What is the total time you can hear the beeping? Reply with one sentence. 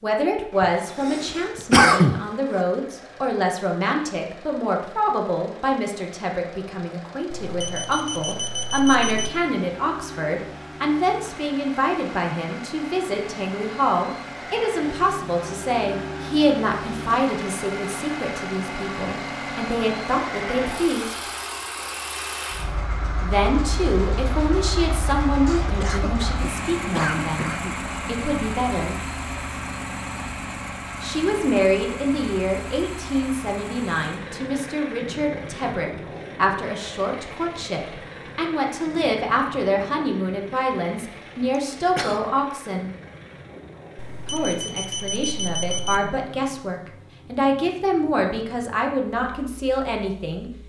The beeping can be heard for 4 seconds in total.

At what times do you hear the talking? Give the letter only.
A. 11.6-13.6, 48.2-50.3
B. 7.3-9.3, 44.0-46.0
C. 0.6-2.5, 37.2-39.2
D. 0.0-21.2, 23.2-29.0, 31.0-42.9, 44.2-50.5
D.